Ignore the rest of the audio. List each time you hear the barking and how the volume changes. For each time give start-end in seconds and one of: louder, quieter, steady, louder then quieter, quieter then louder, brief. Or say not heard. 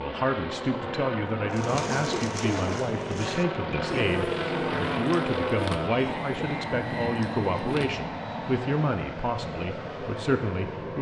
not heard.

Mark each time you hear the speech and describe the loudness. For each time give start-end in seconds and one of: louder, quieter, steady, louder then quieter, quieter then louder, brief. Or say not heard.
0.0-10.9 steady.